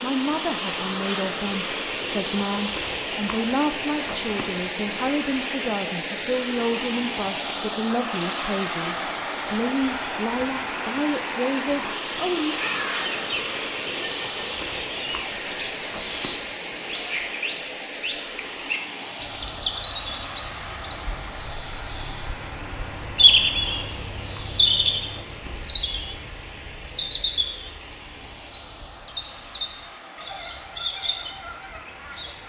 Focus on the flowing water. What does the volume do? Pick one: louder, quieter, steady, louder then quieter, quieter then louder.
quieter.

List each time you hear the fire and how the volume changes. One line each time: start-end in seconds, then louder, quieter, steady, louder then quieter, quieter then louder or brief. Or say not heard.
not heard.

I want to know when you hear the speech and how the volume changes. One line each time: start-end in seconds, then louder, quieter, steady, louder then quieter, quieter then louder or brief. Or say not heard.
0.0-12.6 steady.